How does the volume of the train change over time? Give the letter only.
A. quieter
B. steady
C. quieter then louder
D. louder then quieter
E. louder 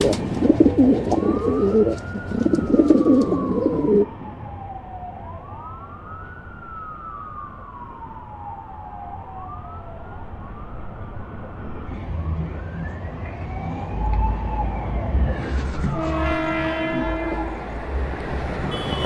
C.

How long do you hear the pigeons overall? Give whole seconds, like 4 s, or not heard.
4 s.